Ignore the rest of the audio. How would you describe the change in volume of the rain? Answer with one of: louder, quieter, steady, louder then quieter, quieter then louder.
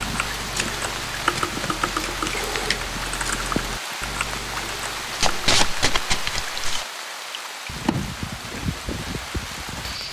steady.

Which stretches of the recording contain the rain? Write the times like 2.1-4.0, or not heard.
0.0-10.0.